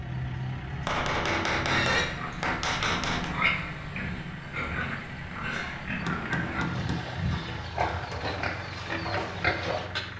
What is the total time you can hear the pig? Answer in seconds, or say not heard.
8 s.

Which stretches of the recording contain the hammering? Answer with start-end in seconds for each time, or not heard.
0.8-3.4, 6.0-8.3.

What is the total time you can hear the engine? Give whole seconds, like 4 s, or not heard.
10 s.